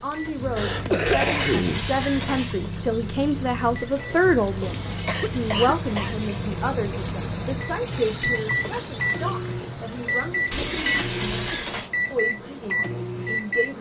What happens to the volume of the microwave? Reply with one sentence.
The loudness of the microwave goes up.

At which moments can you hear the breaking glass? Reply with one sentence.
You can hear the breaking glass from 1.1 to 2.6 s, from 4.6 to 6.5 s and from 10.5 to 11.9 s.